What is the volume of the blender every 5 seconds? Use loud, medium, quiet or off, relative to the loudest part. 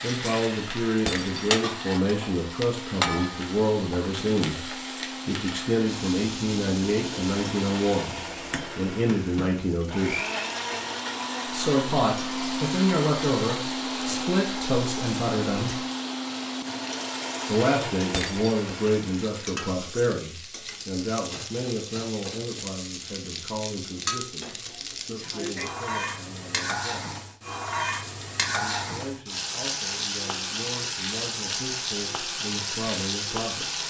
medium, medium, loud, loud, off, off, off.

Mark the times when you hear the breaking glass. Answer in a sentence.
You can hear the breaking glass from 1.1 to 1.5 s and from 18.1 to 18.7 s.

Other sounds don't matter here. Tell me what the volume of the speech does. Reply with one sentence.
The loudness of the speech goes down.